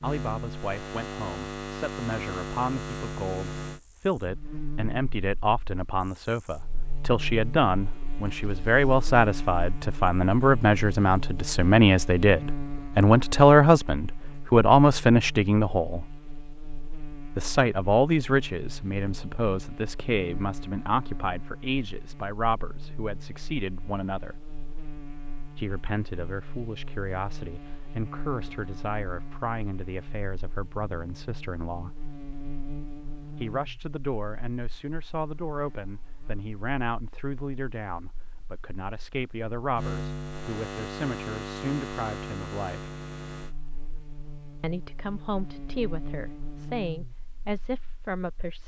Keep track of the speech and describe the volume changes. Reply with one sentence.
The loudness of the speech goes up, then down.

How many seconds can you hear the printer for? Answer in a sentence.
The printer can't be heard in this clip.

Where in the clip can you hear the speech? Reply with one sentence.
You can hear the speech from 0.0 to 16.1 s, from 17.4 to 24.4 s, from 25.6 to 31.9 s, from 33.4 to 42.9 s and from 44.6 to 48.6 s.